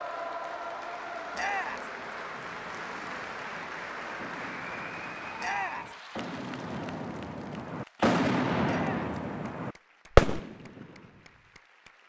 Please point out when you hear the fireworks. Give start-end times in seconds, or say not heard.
2.7-10.9.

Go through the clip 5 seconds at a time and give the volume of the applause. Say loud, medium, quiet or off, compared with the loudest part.
loud, medium, quiet.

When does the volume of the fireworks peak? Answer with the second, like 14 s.
10 s.